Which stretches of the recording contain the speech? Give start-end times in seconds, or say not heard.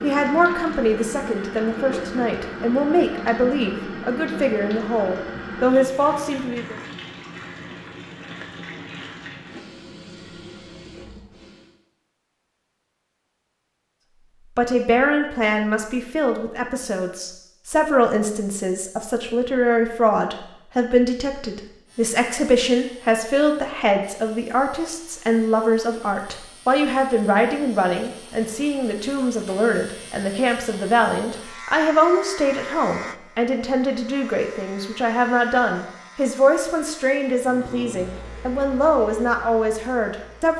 0.0-6.8, 14.6-40.5.